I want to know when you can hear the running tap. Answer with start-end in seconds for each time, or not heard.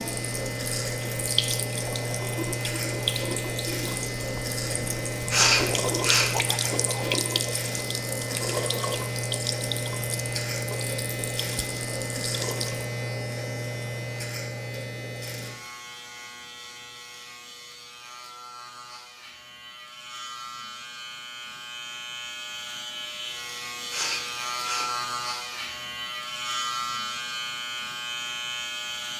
0.0-12.8.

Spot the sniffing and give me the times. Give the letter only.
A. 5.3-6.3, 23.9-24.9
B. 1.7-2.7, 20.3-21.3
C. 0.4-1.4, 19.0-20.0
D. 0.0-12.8
A.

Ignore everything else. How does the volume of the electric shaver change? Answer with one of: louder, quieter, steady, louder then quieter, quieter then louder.
quieter then louder.